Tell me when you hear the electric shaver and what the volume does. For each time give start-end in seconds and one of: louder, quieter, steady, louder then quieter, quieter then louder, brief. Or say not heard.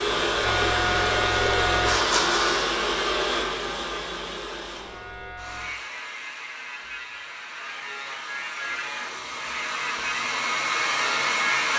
0.2-2.8 brief
4.7-11.7 louder.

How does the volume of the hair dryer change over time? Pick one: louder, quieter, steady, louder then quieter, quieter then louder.
quieter then louder.